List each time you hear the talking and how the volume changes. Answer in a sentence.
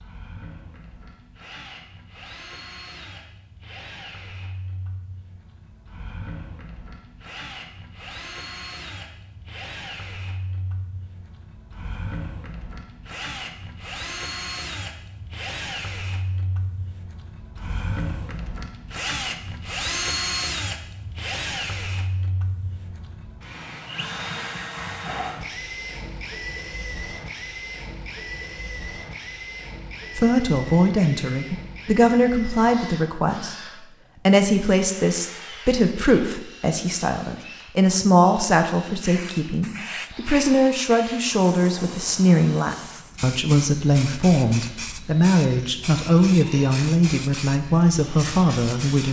The talking can be heard from 30.1 to 49.0 s, at a steady volume.